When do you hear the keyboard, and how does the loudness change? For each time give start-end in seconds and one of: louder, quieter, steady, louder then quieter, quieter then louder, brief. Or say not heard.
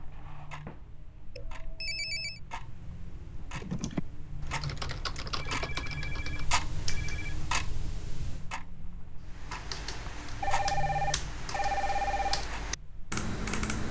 3.4-7.4 quieter
9.2-13.8 louder.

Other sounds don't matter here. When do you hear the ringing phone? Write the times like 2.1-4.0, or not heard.
1.4-2.4, 5.5-7.3, 10.4-12.4.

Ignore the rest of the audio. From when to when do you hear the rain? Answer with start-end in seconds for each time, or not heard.
not heard.